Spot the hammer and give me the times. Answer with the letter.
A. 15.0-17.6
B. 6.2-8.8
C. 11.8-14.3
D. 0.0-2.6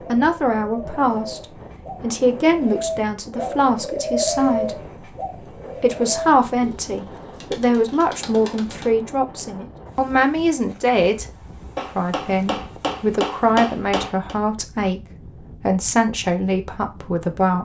C.